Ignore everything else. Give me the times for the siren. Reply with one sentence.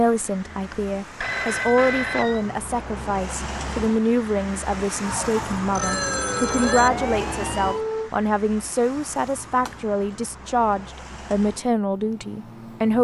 The siren can be heard from 5.0 to 8.1 s.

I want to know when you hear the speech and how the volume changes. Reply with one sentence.
You can hear the speech from 0.0 to 13.0 s, at a steady volume.